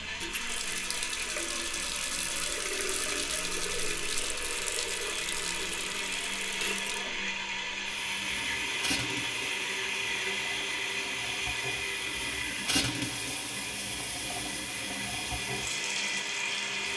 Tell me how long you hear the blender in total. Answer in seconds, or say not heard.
17 s.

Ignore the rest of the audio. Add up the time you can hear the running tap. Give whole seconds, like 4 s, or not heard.
17 s.